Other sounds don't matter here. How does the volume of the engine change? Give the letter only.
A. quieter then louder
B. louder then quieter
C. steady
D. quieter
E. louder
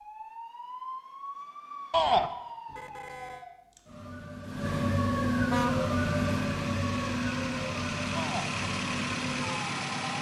E.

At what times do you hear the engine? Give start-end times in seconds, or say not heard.
5.7-10.1.